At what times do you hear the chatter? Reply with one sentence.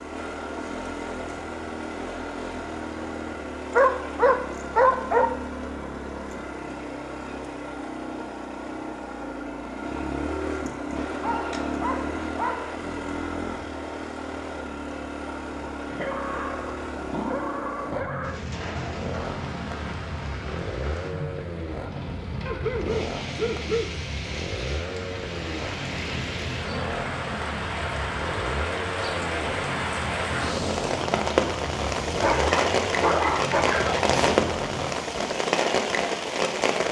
The chatter can't be heard in this clip.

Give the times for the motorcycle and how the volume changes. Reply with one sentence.
You can hear the motorcycle from 0.0 to 35.0 s, at a steady volume.